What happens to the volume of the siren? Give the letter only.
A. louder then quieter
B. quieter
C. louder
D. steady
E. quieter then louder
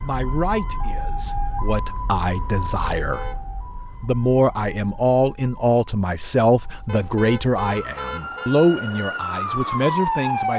E.